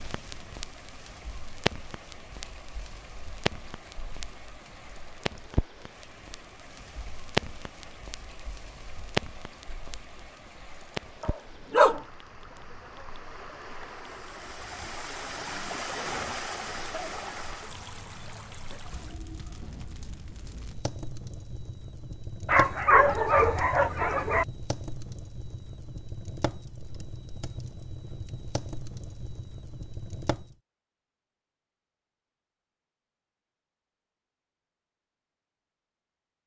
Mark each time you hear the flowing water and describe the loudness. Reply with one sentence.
The flowing water can be heard from 0.0 to 19.2 s, getting louder.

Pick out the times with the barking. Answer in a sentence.
The barking can be heard from 11.2 to 12.0 s and from 22.4 to 24.4 s.